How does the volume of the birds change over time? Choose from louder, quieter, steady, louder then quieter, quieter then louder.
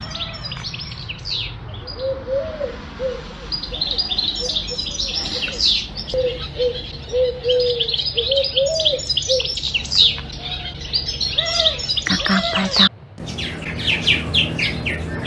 louder.